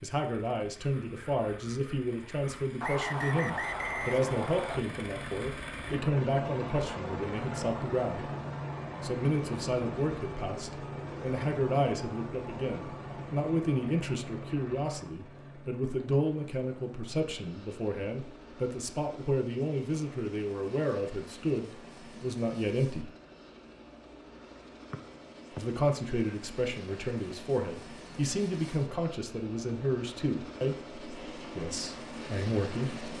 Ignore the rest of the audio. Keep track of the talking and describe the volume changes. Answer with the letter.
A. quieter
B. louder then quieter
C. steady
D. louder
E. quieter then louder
C.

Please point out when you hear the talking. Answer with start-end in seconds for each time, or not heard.
0.0-8.3, 9.0-23.1, 25.6-33.0.